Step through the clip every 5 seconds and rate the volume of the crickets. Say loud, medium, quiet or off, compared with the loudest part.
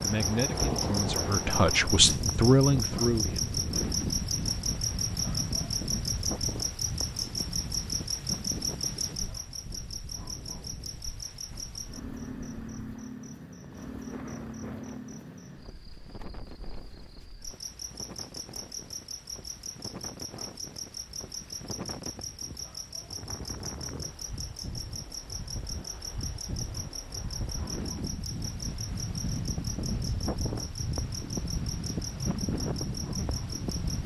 loud, loud, medium, medium, medium, medium, medium.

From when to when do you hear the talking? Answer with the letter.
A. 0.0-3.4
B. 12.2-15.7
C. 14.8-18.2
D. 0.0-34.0
A.